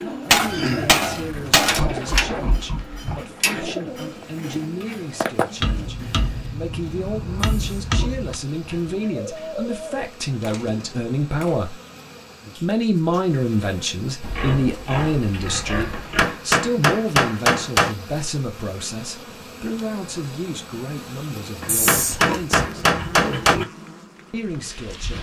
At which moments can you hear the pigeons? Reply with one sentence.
You can hear the pigeons from 0.0 to 6.4 s and from 8.9 to 11.0 s.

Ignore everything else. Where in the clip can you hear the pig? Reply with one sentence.
You can hear the pig from 1.3 to 3.3 s, from 7.5 to 9.1 s, from 14.2 to 16.2 s and from 21.6 to 23.6 s.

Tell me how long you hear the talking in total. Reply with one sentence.
The talking can be heard for 23 seconds in total.